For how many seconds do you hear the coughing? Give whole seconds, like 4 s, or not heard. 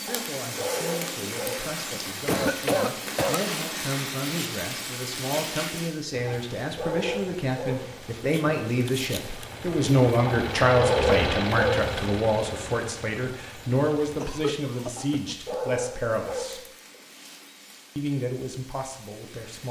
4 s.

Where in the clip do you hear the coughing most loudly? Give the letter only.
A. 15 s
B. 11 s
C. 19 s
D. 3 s
D.